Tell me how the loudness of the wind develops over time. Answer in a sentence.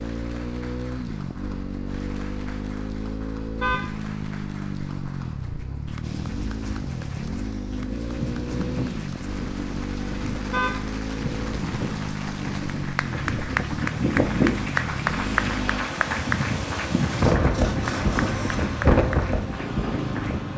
The loudness of the wind goes up.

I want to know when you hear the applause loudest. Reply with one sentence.
The loudest moment of the applause is at 15 seconds.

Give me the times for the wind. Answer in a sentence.
You can hear the wind from 6.0 to 20.5 s.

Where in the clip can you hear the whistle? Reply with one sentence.
You can't hear the whistle here.